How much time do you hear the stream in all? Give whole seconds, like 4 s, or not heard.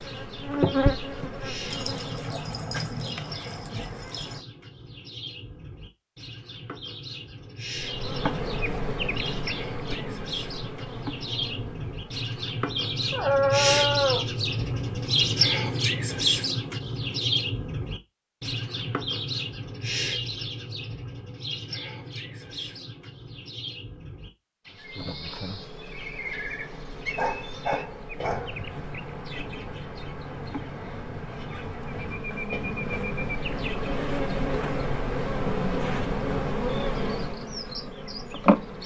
not heard.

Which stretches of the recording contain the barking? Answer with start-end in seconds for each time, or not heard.
1.7-4.4, 13.1-14.2, 27.1-28.6.